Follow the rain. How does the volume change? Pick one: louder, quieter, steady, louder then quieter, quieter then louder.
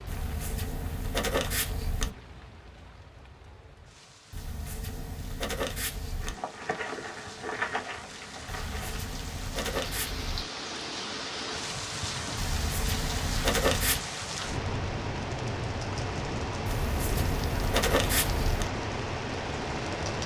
louder.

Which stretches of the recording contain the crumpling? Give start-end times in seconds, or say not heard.
6.2-9.0.